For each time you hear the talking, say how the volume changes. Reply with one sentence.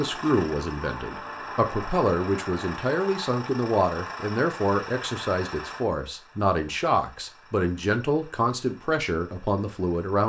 The talking can be heard from 0.0 to 10.2 s, at a steady volume.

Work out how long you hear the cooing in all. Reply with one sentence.
You can't hear the cooing here.